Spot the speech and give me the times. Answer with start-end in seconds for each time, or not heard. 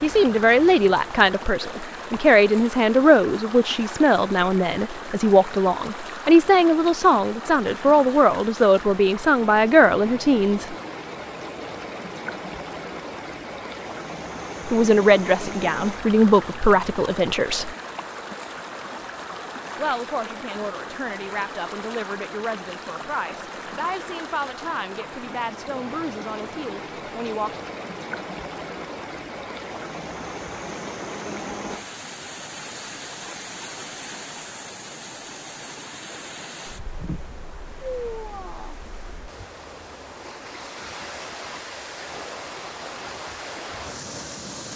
0.0-10.8, 14.7-17.8, 19.8-27.6.